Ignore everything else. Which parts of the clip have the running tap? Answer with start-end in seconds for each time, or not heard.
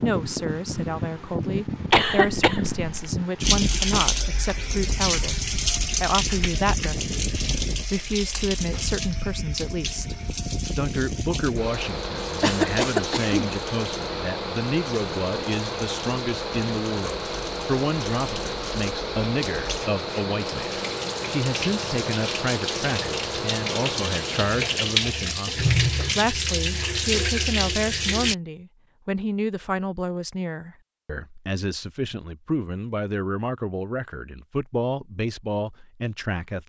3.4-28.4.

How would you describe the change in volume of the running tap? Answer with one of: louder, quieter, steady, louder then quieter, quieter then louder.
quieter then louder.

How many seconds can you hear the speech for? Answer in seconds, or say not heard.
36 s.